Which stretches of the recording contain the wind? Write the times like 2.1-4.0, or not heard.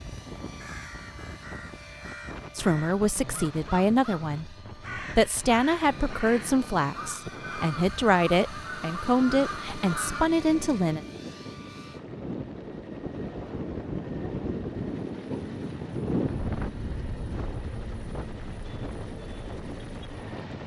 0.0-20.6.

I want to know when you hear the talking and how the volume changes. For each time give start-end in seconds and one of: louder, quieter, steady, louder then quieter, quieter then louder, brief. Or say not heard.
2.5-11.1 steady.